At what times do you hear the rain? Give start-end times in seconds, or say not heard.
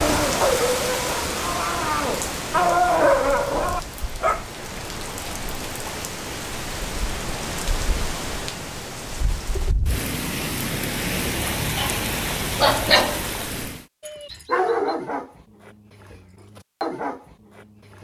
0.0-13.8.